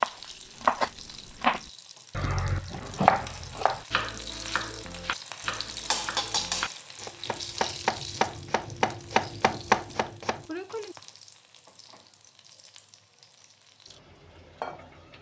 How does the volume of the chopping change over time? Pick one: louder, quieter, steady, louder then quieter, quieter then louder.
quieter then louder.